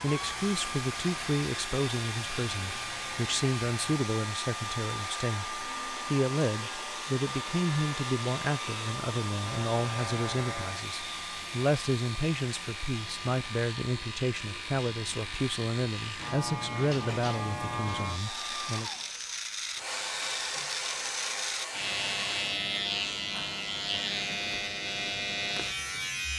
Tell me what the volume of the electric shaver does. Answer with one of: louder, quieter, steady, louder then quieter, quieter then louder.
louder.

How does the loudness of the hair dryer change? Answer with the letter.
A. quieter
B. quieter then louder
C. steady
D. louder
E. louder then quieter
B.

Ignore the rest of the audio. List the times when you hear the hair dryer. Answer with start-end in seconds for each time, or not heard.
0.0-22.6.